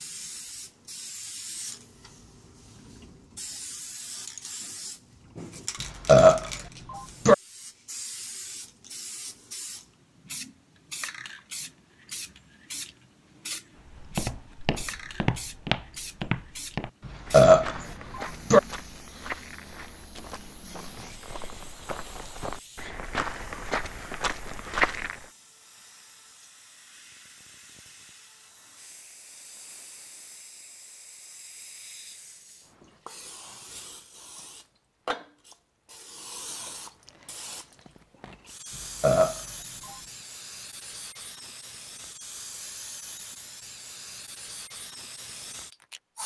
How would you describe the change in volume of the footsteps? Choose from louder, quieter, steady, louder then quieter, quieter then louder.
quieter then louder.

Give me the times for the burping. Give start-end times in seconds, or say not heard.
5.8-7.3, 17.1-18.6, 39.0-40.0.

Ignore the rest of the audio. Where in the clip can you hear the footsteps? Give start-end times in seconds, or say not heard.
13.8-25.2.